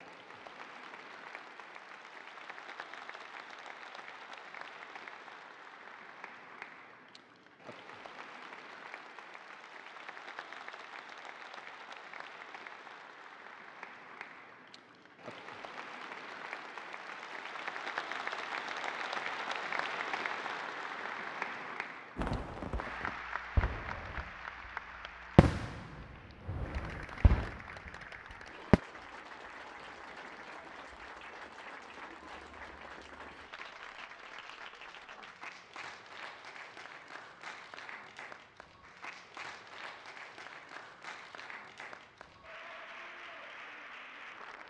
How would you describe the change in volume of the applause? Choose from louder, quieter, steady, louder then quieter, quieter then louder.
louder then quieter.